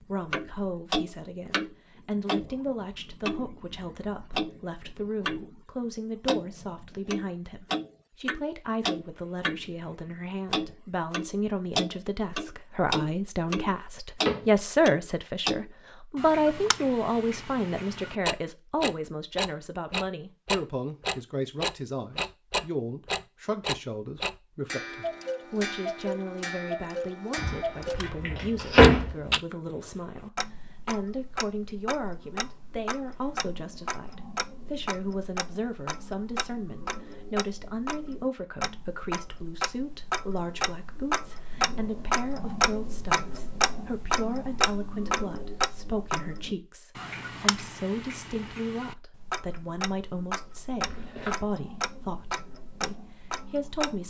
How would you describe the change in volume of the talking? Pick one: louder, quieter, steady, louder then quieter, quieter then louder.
louder then quieter.